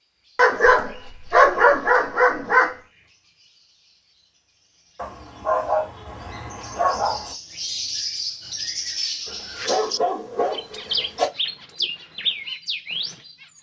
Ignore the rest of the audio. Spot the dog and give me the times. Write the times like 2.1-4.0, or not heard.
0.3-2.8, 5.0-7.3, 9.2-11.2.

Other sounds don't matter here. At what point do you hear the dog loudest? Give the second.
2 s.